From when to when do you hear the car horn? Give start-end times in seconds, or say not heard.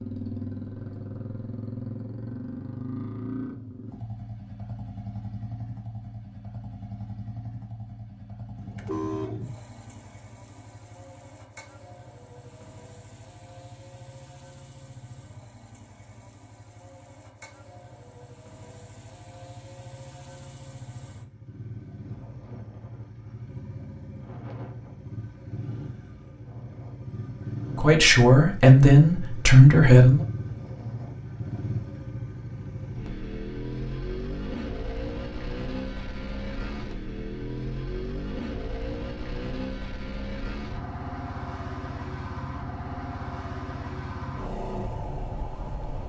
8.6-9.5.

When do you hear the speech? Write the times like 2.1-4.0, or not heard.
27.8-30.2.